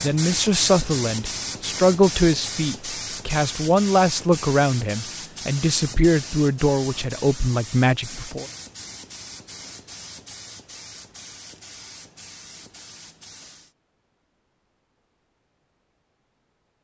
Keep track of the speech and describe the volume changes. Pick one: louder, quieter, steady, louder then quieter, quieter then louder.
steady.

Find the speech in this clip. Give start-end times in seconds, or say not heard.
0.0-8.4.